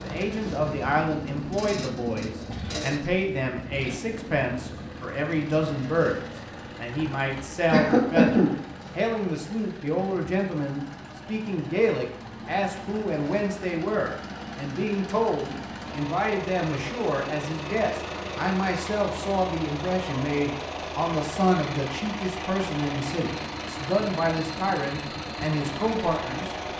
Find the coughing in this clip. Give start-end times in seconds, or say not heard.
7.7-8.6.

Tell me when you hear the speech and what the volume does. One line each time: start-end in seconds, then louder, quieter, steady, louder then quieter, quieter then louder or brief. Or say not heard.
0.0-26.6 steady.